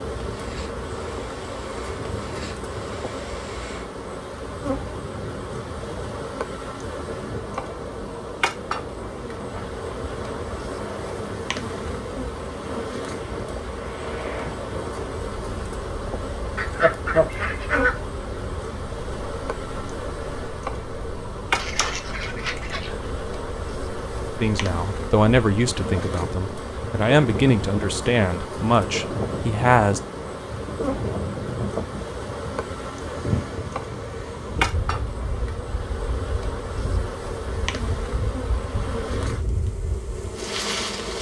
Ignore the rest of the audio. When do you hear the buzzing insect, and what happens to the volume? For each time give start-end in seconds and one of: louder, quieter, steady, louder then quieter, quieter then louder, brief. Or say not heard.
0.0-41.1 steady.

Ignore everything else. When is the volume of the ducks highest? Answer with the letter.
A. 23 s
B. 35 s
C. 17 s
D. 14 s
C.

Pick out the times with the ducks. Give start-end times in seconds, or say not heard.
16.6-17.9, 21.6-22.9.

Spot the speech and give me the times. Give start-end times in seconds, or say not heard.
24.4-30.0.